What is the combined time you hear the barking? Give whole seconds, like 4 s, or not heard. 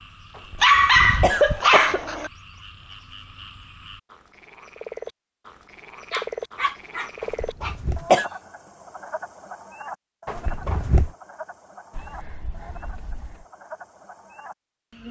5 s.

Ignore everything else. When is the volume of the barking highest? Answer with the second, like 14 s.
1 s.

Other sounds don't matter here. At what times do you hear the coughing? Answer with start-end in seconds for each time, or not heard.
0.5-2.0, 7.2-8.2, 10.2-11.1.